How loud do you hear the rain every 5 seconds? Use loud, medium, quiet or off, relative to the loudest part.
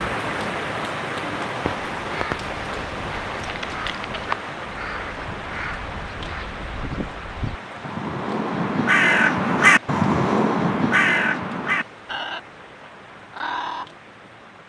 loud, medium, quiet.